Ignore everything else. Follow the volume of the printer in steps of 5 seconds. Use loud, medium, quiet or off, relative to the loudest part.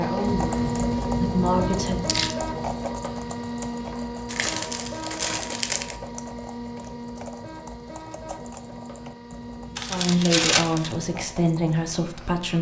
loud, medium, quiet.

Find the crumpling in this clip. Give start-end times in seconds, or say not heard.
2.0-2.5, 4.2-6.0, 9.8-10.9.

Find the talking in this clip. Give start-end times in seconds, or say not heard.
0.0-2.1, 9.8-12.5.